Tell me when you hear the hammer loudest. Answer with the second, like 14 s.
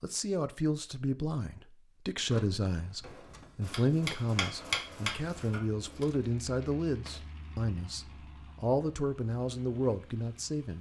5 s.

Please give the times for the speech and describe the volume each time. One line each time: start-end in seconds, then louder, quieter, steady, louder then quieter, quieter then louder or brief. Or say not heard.
0.0-10.7 steady.